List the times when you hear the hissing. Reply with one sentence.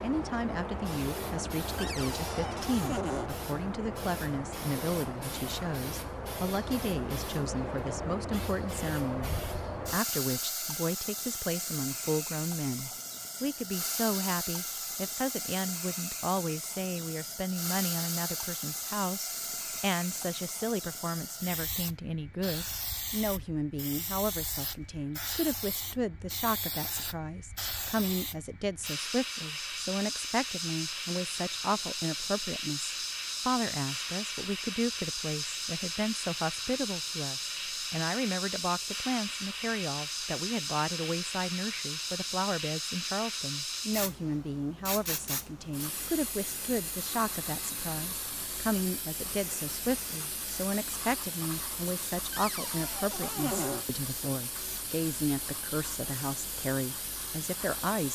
You can hear the hissing from 0.0 to 58.0 s.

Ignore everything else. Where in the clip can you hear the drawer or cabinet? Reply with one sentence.
You can hear the drawer or cabinet from 1.8 to 3.3 s and from 52.3 to 53.9 s.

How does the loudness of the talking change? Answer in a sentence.
The volume of the talking stays about the same.